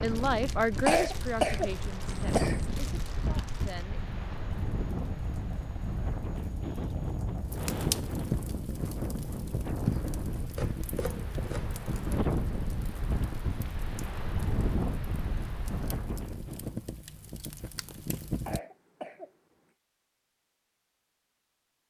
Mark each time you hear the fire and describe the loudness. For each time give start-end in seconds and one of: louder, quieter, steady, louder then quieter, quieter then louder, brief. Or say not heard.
0.0-18.6 louder then quieter.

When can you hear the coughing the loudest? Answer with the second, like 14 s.
1 s.